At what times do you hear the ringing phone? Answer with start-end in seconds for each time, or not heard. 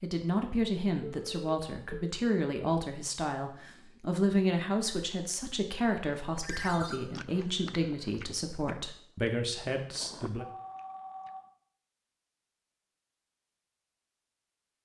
1.2-2.0, 6.4-7.0, 10.3-11.4.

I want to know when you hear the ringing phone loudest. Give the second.
7 s.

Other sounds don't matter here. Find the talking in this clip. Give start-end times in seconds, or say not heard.
0.0-10.4.